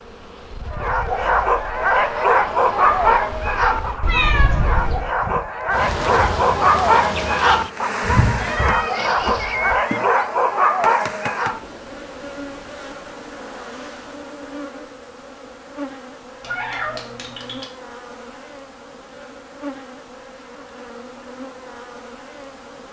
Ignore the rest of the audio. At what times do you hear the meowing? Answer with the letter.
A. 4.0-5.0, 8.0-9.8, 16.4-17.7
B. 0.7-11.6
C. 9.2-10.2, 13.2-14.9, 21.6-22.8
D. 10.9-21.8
A.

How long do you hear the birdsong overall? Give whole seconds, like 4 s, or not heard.
not heard.